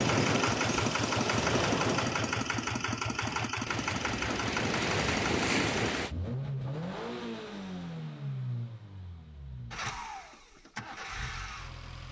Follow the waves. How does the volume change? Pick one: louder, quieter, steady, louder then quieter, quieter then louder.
quieter then louder.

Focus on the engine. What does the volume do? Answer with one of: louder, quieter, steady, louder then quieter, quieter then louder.
quieter.